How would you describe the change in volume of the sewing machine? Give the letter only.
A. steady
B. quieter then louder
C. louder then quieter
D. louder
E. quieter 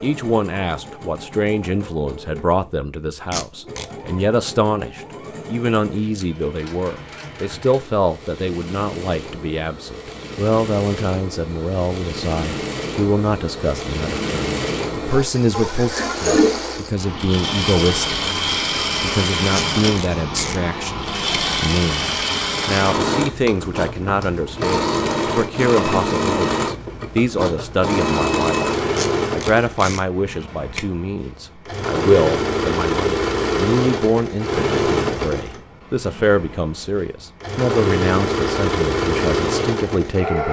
D.